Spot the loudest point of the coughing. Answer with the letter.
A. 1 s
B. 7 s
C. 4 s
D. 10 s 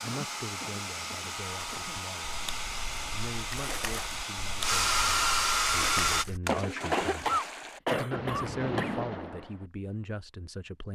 B.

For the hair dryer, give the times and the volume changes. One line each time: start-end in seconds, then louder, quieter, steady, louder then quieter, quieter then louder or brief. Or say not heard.
0.0-6.2 louder.